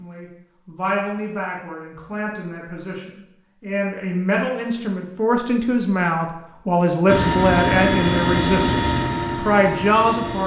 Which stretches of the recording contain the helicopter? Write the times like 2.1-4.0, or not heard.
7.0-10.4.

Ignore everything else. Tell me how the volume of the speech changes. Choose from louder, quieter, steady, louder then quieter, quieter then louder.
louder.